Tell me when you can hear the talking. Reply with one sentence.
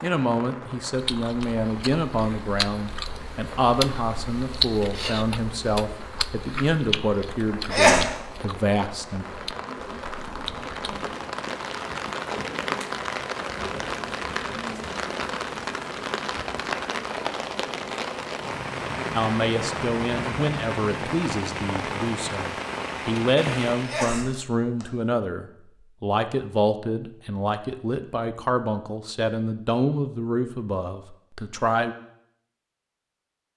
The talking can be heard from 0.0 to 9.2 s and from 19.1 to 31.9 s.